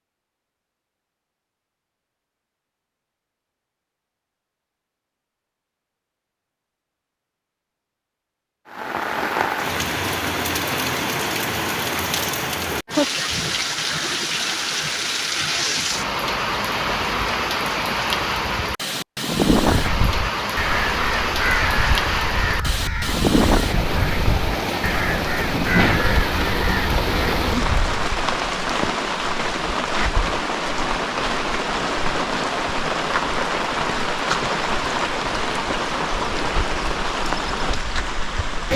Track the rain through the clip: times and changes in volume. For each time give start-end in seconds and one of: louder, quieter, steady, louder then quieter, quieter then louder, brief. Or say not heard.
8.7-38.7 steady.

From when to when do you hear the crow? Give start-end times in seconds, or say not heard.
19.6-28.1.